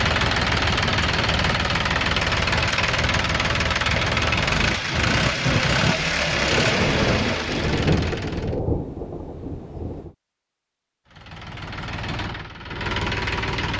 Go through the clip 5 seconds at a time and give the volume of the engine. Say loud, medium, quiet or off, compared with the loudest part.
loud, loud, medium.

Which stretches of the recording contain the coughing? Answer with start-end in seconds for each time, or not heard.
not heard.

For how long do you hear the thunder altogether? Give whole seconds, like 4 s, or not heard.
4 s.